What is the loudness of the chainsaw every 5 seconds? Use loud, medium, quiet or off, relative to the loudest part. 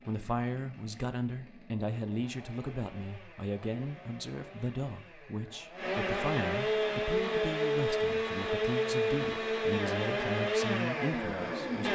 quiet, loud, loud.